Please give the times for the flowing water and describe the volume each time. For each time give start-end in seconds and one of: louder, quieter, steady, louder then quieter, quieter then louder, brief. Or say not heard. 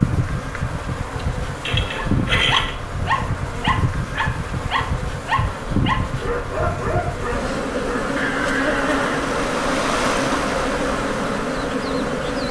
0.0-12.4 louder.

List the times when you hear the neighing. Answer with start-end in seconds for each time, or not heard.
1.1-2.8, 8.2-9.2.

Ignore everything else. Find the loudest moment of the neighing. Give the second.
2 s.